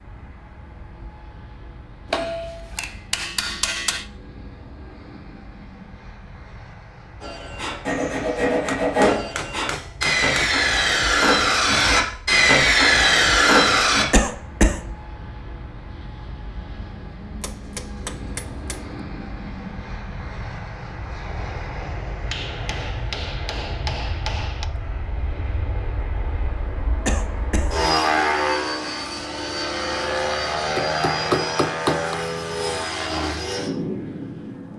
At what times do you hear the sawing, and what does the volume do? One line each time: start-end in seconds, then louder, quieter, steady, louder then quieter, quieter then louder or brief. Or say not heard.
7.2-14.1 louder.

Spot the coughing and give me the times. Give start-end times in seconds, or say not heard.
14.1-14.8, 27.1-27.7.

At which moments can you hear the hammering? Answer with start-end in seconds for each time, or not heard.
2.1-4.0, 8.7-10.5, 17.4-18.9, 22.3-24.6, 30.4-32.1.